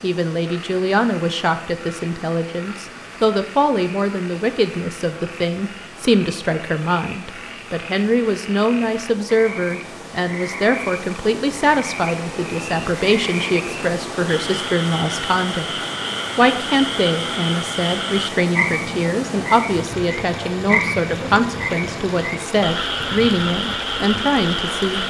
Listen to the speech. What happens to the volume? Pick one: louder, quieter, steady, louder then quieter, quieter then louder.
steady.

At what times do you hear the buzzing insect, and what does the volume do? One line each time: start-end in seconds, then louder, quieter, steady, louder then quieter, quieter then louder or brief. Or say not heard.
not heard.